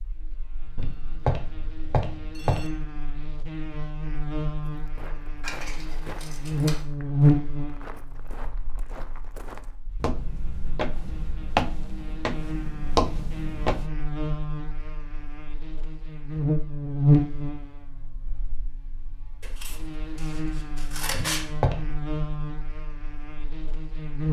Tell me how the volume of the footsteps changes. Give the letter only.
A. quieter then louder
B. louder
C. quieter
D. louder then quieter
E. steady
B.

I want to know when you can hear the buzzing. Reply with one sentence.
The buzzing can be heard from 0.0 to 24.2 s.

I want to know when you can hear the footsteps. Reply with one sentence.
The footsteps can be heard from 4.6 to 13.9 s.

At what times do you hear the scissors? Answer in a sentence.
The scissors can be heard from 5.4 to 6.8 s and from 19.4 to 21.4 s.